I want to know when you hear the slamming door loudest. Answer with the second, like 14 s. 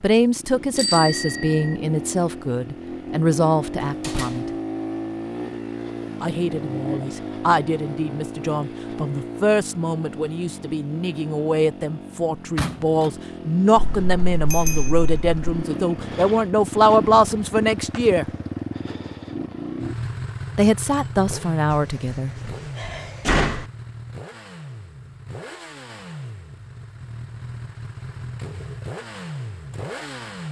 23 s.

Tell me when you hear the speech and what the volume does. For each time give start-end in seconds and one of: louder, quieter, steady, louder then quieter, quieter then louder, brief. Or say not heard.
0.0-4.5 steady
6.2-18.2 louder
20.6-22.4 brief.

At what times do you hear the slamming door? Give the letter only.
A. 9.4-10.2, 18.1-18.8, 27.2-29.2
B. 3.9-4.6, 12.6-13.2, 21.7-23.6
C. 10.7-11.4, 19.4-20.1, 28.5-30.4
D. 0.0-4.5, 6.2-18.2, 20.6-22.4
B.